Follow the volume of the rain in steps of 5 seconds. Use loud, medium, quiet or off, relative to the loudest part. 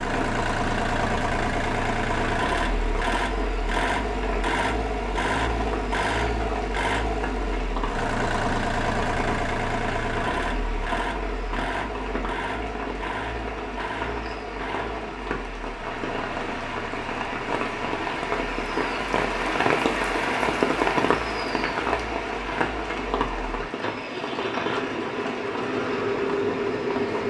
medium, medium, medium, loud, loud, medium.